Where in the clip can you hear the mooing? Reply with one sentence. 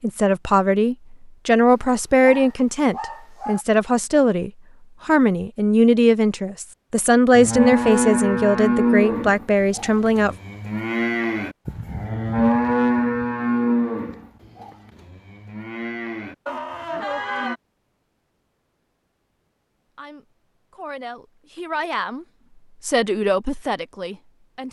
The mooing can be heard from 7.3 to 17.6 s.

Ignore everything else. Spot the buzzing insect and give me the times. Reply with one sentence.
The buzzing insect can't be heard in this clip.